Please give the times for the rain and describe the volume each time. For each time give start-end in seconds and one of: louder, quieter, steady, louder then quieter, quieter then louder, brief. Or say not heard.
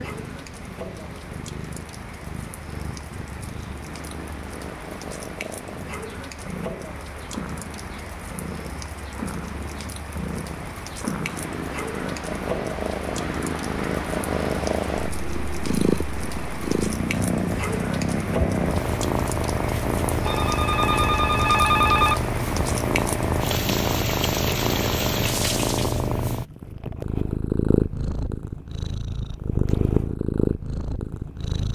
0.0-26.1 louder.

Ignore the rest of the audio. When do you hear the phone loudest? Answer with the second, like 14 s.
22 s.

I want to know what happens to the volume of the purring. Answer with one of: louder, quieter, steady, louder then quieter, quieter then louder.
louder.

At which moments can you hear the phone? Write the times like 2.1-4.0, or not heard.
20.2-22.2.